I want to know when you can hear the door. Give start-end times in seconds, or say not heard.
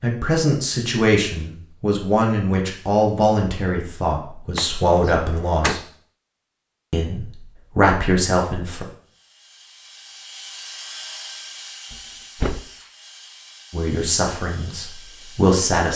4.5-5.8, 11.9-12.6.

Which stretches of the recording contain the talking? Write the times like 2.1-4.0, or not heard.
0.0-5.8, 6.9-8.8, 13.7-15.9.